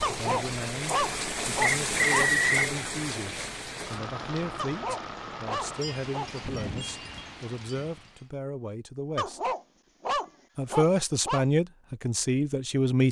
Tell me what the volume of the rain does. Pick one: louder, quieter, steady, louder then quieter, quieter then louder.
quieter.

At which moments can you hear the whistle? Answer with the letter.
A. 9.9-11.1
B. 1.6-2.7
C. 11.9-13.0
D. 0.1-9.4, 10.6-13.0
B.